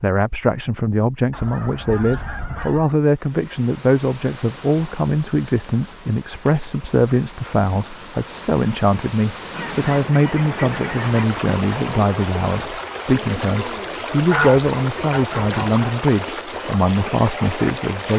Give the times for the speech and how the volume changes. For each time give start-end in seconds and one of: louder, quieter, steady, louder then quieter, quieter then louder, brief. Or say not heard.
0.0-18.1 steady.